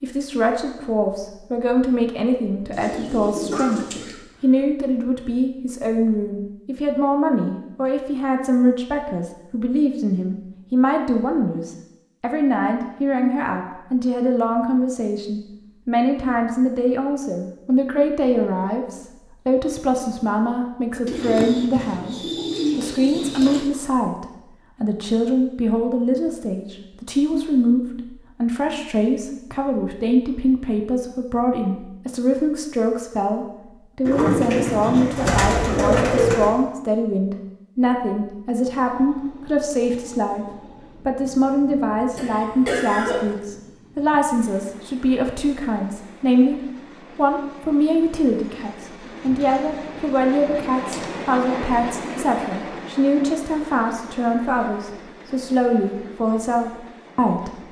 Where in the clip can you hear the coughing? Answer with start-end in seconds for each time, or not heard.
3.5-4.6, 42.1-43.4.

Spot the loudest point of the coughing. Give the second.
43 s.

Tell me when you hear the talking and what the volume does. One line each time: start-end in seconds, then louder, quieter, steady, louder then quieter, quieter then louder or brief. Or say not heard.
0.0-57.6 steady.